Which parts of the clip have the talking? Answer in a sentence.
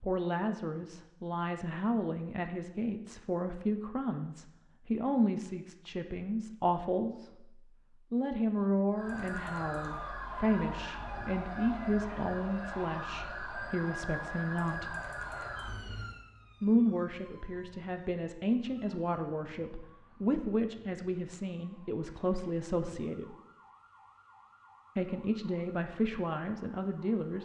The talking can be heard from 0.0 to 7.5 s, from 8.1 to 14.9 s, from 16.6 to 23.4 s and from 24.9 to 27.4 s.